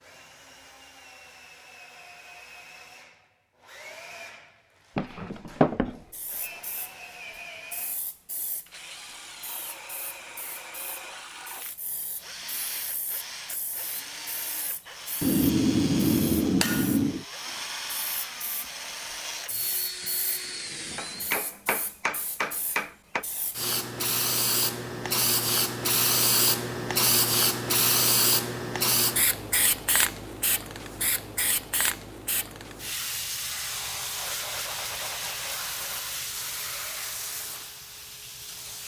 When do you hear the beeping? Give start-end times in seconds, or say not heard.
5.0-6.6.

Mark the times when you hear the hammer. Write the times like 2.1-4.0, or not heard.
15.2-17.2, 20.9-23.2.